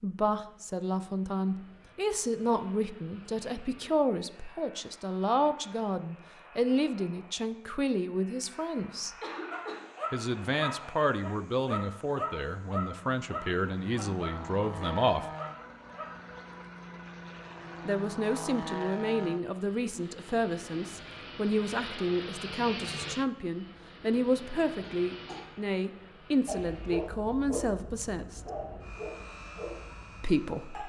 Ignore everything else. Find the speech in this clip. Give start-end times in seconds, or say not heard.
0.0-9.2, 10.1-15.2, 17.9-28.4, 30.2-30.8.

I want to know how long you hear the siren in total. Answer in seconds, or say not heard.
not heard.